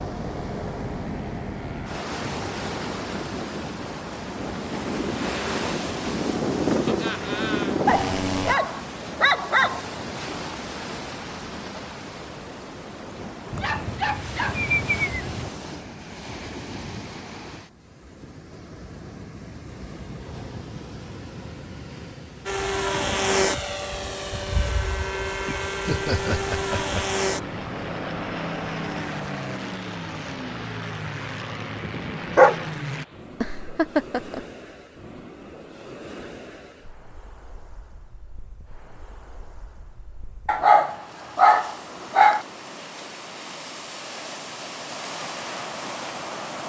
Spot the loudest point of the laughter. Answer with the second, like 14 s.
34 s.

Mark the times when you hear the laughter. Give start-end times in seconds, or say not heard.
6.8-7.8, 25.9-27.1, 33.4-34.5.